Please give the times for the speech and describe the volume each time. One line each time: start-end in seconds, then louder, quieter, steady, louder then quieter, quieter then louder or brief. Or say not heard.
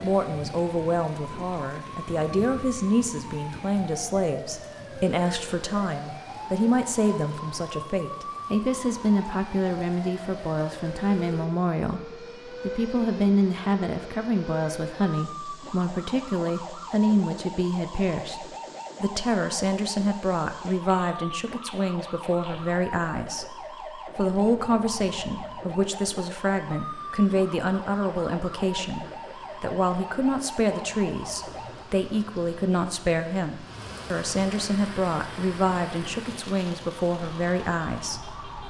0.0-38.4 steady.